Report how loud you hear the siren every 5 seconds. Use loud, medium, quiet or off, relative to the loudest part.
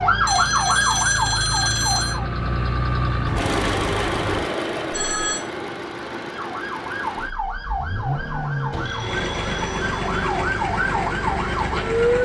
loud, medium, loud.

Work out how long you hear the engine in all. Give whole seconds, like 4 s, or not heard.
12 s.